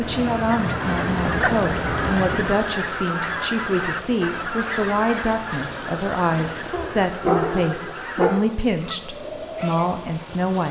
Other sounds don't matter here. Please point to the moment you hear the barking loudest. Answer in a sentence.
The volume of the barking peaks at 7 seconds.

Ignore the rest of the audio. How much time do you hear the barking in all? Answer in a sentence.
You can hear the barking for 3 seconds altogether.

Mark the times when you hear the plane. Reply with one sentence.
You can hear the plane from 0.0 to 2.5 s.